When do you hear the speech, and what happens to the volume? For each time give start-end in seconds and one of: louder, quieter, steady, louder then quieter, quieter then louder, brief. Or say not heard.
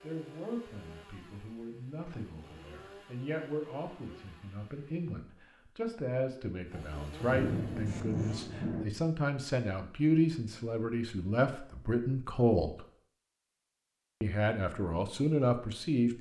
0.0-12.8 louder
14.2-16.1 brief.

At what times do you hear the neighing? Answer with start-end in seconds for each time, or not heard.
not heard.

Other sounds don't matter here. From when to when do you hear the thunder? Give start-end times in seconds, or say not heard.
7.2-8.8.